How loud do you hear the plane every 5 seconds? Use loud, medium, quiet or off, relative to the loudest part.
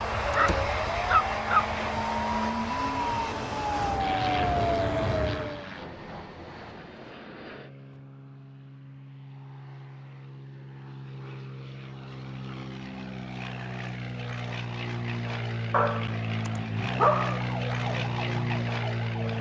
loud, quiet, medium, loud.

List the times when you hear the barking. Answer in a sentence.
The barking can be heard from 0.3 to 1.6 s and from 15.7 to 17.4 s.